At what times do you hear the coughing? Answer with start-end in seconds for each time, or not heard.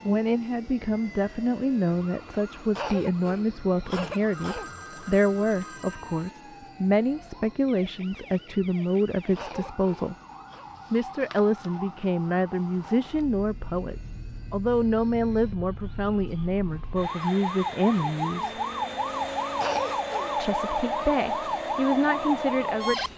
2.8-4.7, 9.3-10.7, 19.6-20.4.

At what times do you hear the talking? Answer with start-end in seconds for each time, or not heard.
0.1-10.2, 10.9-18.6, 20.4-23.1.